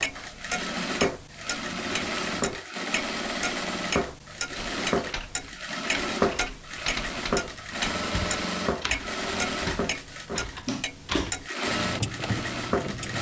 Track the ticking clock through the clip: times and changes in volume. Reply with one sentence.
The ticking clock can be heard from 0.0 to 13.1 s, at a steady volume.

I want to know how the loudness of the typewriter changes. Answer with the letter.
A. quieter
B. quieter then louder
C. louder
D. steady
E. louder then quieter
C.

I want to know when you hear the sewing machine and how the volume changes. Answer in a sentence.
You can hear the sewing machine from 0.0 to 13.1 s, at a steady volume.